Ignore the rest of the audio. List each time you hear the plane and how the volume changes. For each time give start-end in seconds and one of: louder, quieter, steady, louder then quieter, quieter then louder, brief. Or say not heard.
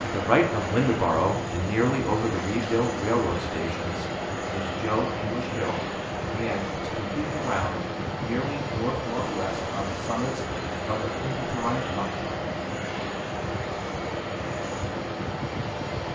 0.0-16.0 steady.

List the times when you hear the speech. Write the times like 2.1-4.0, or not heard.
0.0-12.1.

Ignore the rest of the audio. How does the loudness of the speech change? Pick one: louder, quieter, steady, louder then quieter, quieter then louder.
quieter.